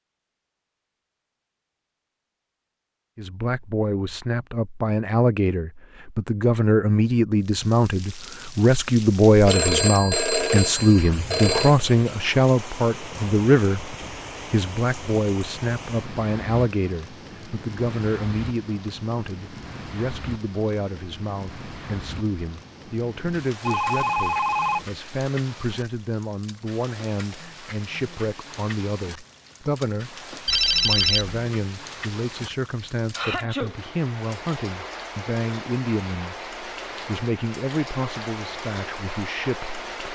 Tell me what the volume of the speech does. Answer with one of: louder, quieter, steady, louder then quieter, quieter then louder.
quieter.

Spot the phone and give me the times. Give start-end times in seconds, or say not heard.
9.4-11.8, 23.6-24.9, 30.4-31.4.